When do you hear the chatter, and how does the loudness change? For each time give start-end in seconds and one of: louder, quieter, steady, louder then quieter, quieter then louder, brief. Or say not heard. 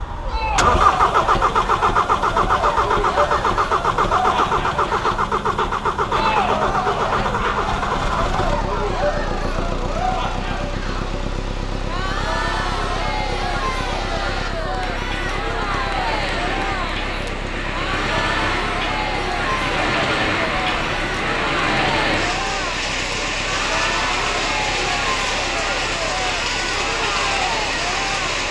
0.1-28.4 steady.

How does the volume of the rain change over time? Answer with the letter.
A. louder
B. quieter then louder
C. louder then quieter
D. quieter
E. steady
A.